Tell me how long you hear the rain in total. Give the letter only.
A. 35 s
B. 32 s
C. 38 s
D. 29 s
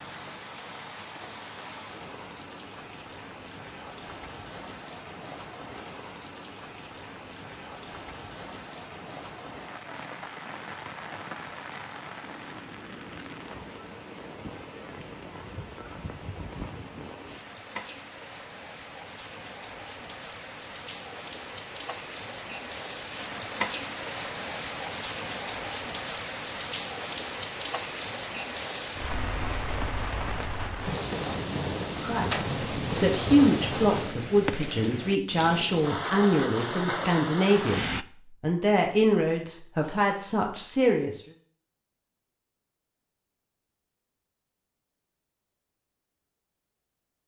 C.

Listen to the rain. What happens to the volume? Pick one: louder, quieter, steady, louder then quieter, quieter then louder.
louder.